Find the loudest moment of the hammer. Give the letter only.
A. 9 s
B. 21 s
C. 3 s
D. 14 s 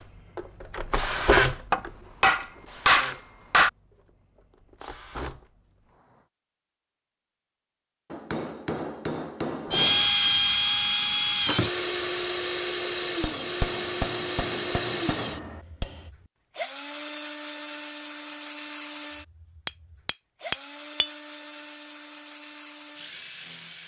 C.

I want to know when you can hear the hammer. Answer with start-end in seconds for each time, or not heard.
1.7-3.7, 8.1-10.1, 13.2-15.8, 19.6-21.1.